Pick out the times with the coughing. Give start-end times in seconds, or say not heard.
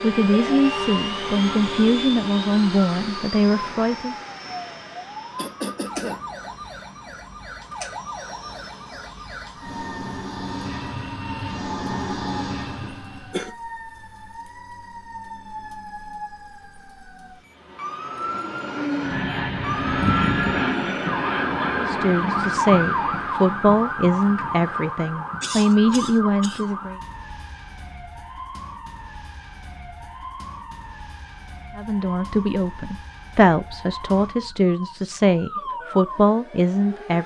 5.3-6.2, 12.8-13.6, 25.4-26.8.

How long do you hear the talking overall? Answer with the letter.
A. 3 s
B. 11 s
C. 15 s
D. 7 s
C.